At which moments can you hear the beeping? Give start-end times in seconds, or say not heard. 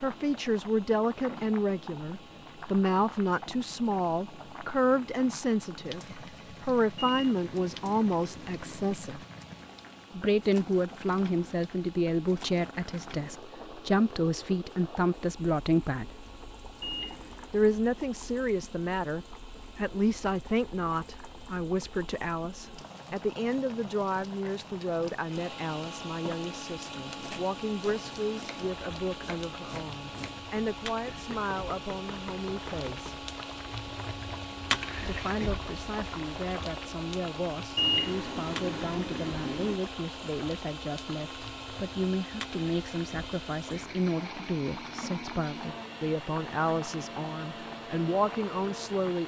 7.0-8.9, 16.8-17.5, 37.8-39.8.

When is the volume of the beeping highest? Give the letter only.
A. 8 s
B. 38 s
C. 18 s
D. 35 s
B.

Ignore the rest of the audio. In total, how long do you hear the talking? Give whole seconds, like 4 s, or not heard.
45 s.